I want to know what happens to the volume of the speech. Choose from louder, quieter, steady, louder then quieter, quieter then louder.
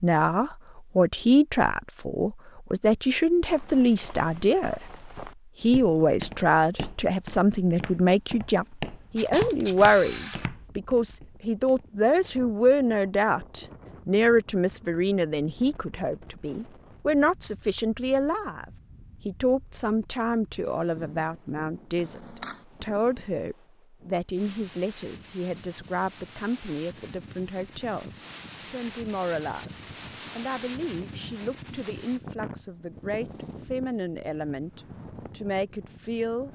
quieter.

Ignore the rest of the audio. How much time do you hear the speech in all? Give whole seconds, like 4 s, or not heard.
35 s.